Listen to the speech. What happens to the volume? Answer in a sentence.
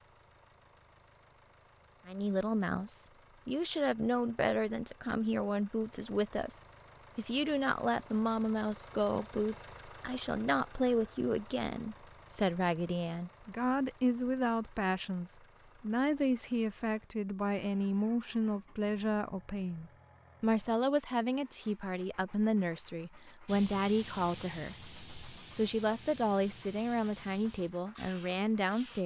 The volume of the speech stays about the same.